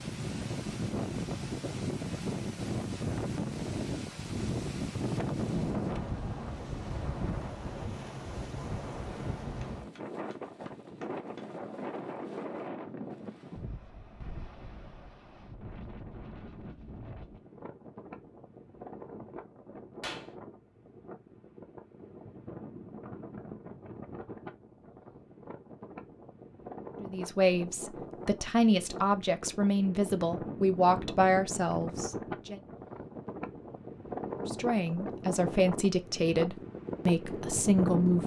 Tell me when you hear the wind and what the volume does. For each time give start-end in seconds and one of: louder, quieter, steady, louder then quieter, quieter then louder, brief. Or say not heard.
0.0-38.2 quieter then louder.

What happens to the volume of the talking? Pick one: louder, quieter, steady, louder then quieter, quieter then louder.
steady.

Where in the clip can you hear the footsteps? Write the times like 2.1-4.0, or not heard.
not heard.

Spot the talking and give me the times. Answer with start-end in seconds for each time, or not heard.
27.0-32.6, 34.4-38.2.